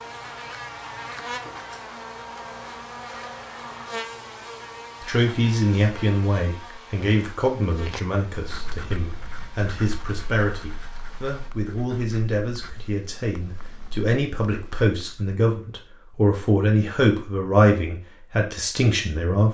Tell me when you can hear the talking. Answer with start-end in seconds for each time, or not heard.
5.0-19.5.